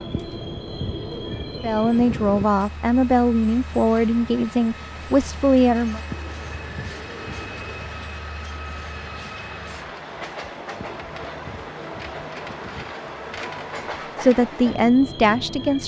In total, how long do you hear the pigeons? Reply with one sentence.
The pigeons can be heard for 6 seconds in total.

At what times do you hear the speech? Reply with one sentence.
The speech can be heard from 1.6 to 6.0 s and from 14.2 to 15.8 s.